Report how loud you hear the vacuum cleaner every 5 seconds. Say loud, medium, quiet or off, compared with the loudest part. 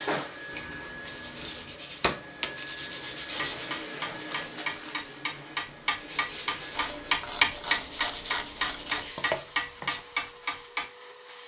loud, medium, medium.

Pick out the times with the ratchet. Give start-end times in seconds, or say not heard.
0.5-1.8, 6.8-9.1.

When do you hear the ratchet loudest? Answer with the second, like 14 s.
8 s.